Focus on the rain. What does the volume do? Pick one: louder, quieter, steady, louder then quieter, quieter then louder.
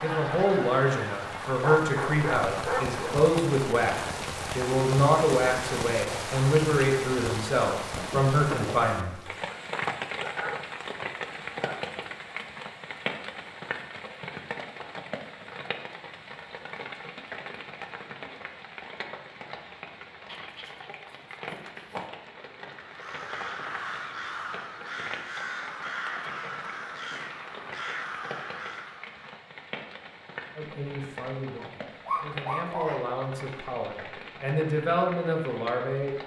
quieter.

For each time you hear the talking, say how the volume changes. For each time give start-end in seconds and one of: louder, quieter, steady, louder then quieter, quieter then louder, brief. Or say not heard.
0.0-9.2 steady
30.6-36.1 louder.